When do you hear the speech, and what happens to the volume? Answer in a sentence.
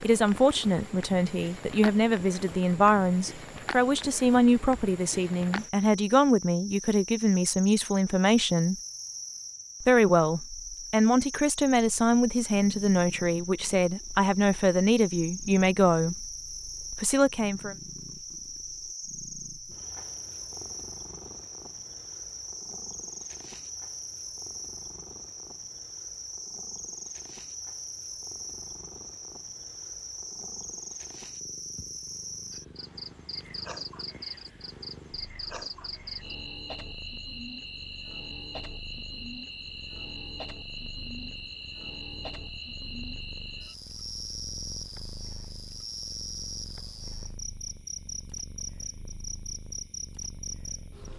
You can hear the speech from 0.0 to 8.8 s, at a steady volume; from 9.8 to 16.2 s, at a steady volume; and briefly from 16.9 to 17.8 s.